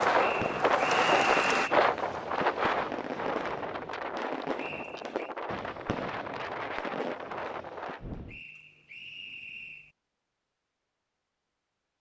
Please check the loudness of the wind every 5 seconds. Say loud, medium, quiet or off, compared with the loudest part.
loud, medium, off.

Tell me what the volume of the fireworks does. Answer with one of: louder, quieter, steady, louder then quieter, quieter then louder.
steady.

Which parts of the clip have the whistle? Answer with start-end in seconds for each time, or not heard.
0.1-1.8, 4.5-5.3, 8.2-9.9.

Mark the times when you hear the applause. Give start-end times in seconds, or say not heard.
0.0-1.7.